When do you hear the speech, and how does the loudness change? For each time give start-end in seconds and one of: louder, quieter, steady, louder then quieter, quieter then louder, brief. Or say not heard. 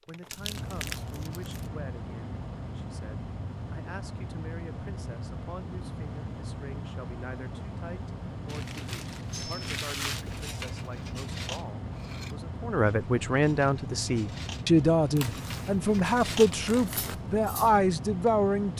0.1-18.7 louder.